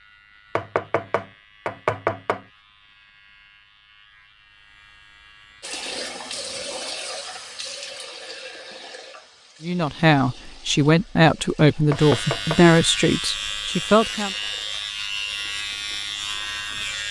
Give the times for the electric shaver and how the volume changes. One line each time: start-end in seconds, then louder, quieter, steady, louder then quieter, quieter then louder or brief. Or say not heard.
0.0-5.8 steady
11.9-17.0 steady.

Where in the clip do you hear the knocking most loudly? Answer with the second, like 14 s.
2 s.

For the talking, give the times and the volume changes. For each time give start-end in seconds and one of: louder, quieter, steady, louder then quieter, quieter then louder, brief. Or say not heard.
9.6-14.3 quieter.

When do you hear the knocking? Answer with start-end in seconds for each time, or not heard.
0.6-2.5, 11.9-12.7.